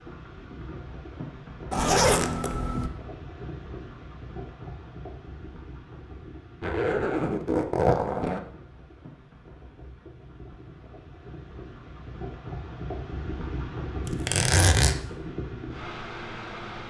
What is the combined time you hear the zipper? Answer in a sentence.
The zipper can be heard for 4 seconds in total.